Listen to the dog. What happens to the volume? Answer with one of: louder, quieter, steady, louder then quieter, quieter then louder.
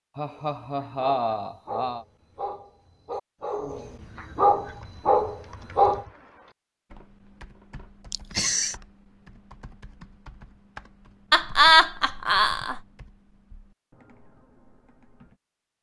louder.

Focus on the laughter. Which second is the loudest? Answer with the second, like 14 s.
12 s.